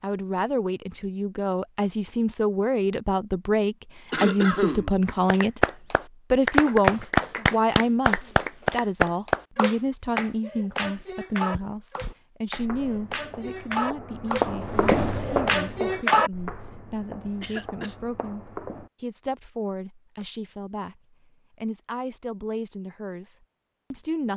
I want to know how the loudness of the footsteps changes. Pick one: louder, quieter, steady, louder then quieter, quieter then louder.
louder then quieter.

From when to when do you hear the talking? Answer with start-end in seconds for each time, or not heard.
0.0-5.7, 6.3-24.3.